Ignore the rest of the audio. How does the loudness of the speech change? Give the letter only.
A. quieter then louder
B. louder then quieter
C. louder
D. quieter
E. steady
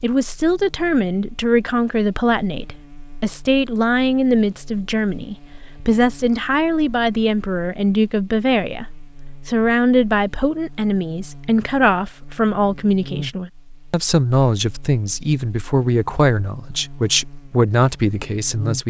E.